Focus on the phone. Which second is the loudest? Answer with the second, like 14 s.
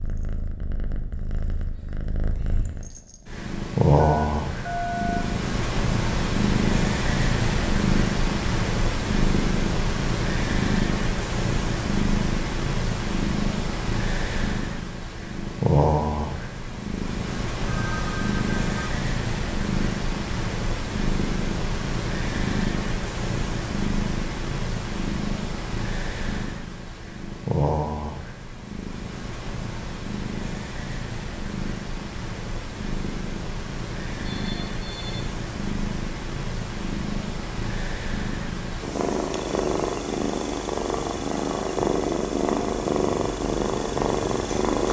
5 s.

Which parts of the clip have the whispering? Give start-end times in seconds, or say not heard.
not heard.